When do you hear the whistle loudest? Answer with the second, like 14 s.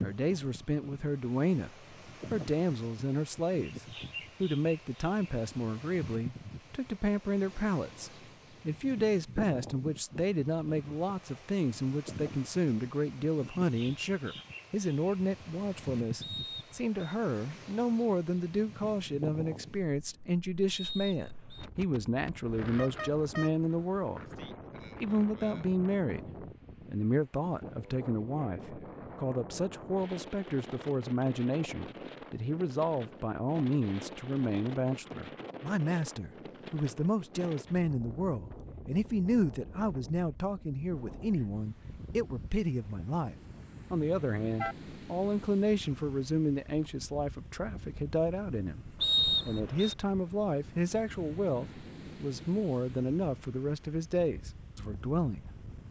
49 s.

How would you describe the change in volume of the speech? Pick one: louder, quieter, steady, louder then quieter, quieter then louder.
steady.